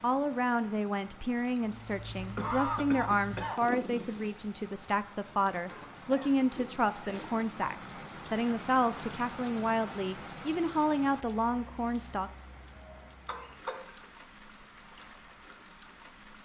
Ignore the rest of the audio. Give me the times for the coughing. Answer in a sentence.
You can hear the coughing from 2.4 to 3.7 s, from 5.7 to 7.5 s and from 12.8 to 14.1 s.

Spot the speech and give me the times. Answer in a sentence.
You can hear the speech from 0.0 to 12.3 s.